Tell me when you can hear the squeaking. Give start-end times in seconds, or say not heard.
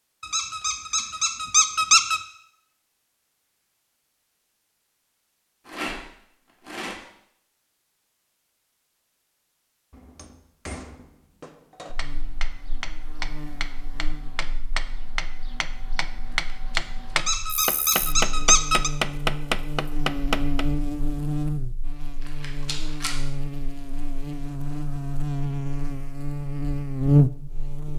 0.2-2.2, 17.1-18.9.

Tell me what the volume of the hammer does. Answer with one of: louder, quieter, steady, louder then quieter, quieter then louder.
louder.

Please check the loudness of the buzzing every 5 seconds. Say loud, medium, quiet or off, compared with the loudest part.
off, off, quiet, quiet, medium, loud.